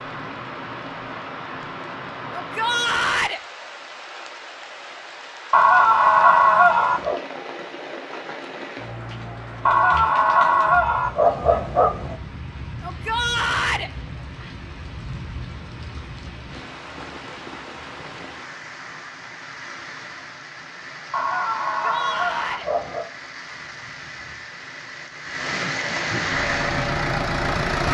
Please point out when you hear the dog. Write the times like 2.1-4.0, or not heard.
5.5-7.2, 9.7-12.2, 21.1-23.1.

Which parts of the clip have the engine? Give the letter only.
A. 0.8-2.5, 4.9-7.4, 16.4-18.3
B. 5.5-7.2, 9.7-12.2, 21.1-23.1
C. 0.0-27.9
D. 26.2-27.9
D.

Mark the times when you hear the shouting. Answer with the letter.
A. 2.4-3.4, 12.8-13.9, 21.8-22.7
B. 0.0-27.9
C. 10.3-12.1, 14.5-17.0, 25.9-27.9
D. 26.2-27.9
A.